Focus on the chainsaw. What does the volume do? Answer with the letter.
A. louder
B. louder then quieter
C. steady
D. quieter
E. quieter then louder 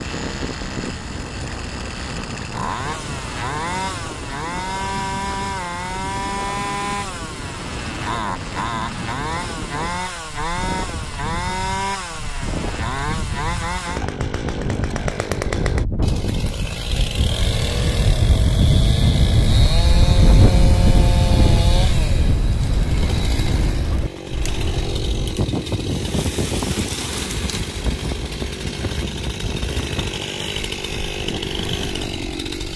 C.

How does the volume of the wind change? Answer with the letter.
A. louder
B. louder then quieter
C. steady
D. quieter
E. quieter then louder
B.